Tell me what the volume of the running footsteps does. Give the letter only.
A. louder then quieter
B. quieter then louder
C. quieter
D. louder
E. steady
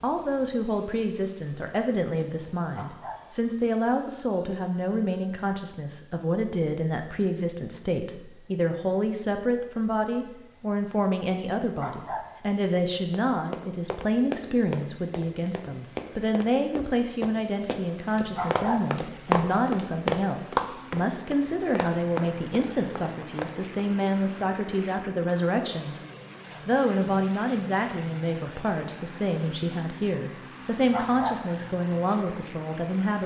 A.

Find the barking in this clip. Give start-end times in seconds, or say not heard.
2.7-3.2, 11.8-12.2, 18.3-18.8, 30.9-31.4.